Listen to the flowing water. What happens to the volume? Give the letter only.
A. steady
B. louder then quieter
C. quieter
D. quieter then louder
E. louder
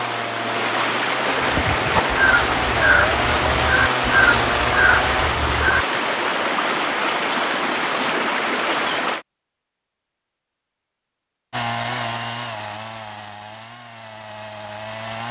A.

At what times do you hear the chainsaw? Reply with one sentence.
You can hear the chainsaw from 0.0 to 5.3 s and from 11.5 to 15.2 s.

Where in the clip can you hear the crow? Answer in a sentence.
You can hear the crow from 1.4 to 5.8 s.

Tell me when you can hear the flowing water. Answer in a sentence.
You can hear the flowing water from 0.0 to 9.2 s.